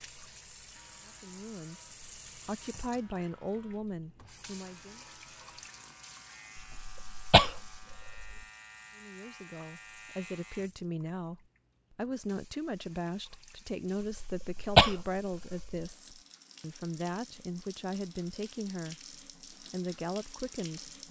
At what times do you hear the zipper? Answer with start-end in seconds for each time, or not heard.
not heard.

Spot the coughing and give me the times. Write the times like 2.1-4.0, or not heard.
6.5-8.4, 14.2-15.8.